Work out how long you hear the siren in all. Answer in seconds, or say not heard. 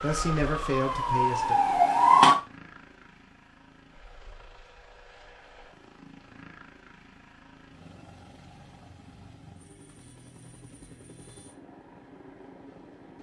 2 s.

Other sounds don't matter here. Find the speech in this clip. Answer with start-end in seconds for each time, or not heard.
0.0-1.6.